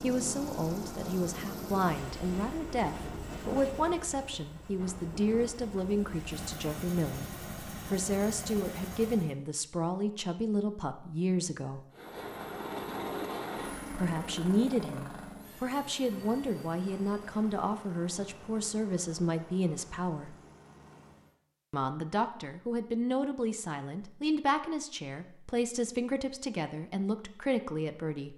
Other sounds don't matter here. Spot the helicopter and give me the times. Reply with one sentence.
You can hear the helicopter from 0.0 to 9.3 s and from 11.9 to 21.4 s.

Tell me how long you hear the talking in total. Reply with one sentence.
The talking can be heard for 25 seconds in total.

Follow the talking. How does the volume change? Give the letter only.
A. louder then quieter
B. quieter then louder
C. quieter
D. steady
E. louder
D.